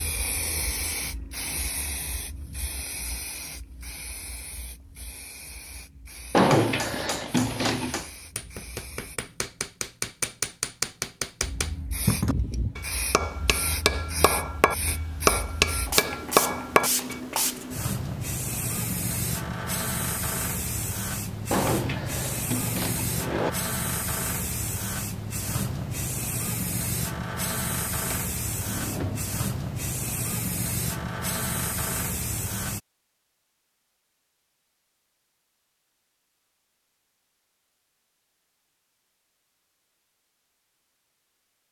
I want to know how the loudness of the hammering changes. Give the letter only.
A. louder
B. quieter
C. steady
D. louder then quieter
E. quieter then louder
A.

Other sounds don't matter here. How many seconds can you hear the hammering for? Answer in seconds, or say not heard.
11 s.